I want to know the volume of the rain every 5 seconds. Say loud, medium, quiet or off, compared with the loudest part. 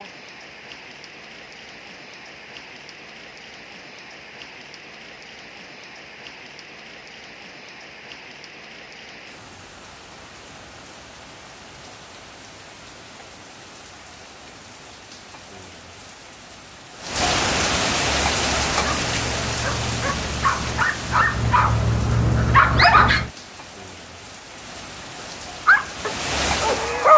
quiet, quiet, quiet, loud, medium, loud.